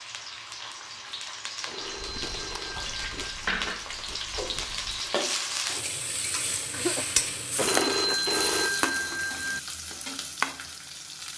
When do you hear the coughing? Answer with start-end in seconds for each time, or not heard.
6.7-8.3.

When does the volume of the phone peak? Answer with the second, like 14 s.
8 s.